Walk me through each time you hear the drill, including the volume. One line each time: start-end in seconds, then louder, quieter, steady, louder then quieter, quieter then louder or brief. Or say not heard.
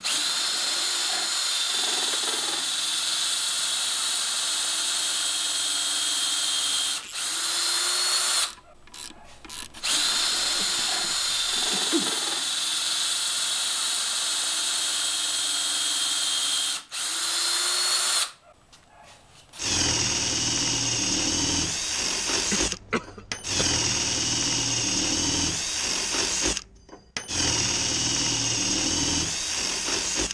0.0-30.2 steady.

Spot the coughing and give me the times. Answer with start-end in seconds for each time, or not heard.
10.6-12.1, 22.5-23.6.